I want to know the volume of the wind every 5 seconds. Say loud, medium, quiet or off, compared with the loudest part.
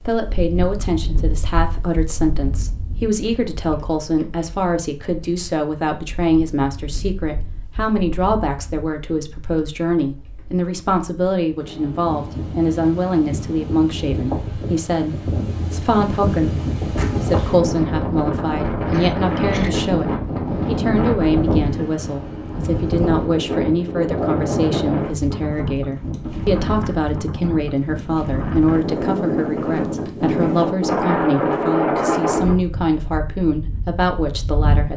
quiet, quiet, medium, loud, loud, loud, loud.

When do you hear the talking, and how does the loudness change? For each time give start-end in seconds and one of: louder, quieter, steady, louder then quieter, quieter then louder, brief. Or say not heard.
0.1-34.9 steady.